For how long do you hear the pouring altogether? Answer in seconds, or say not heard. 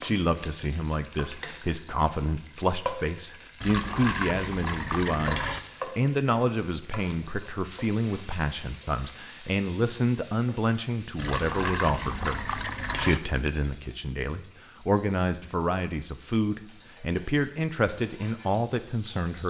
4 s.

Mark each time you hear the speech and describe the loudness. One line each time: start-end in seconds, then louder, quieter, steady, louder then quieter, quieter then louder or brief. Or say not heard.
0.0-19.4 steady.